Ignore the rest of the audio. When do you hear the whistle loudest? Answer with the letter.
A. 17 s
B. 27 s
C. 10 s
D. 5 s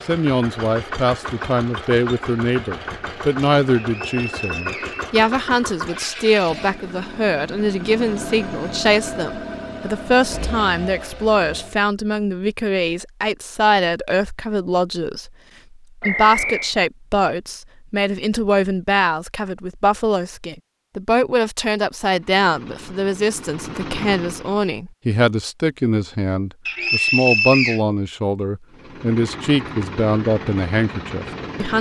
B.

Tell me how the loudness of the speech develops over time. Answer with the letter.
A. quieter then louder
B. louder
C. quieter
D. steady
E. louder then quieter
D.